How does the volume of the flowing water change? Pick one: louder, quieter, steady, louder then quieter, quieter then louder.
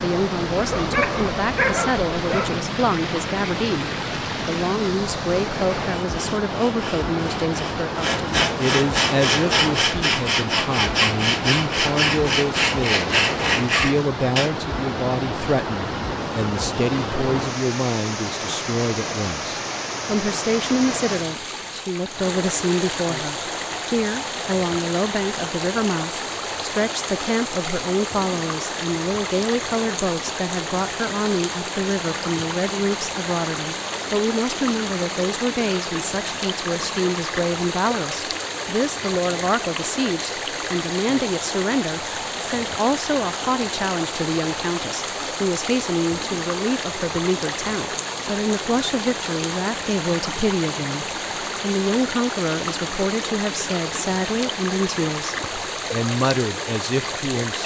steady.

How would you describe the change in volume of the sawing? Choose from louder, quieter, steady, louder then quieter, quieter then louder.
louder.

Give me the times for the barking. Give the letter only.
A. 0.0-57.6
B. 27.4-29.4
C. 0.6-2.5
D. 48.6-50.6
C.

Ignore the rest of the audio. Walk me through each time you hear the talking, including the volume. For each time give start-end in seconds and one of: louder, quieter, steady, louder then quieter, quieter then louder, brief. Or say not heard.
0.0-57.6 steady.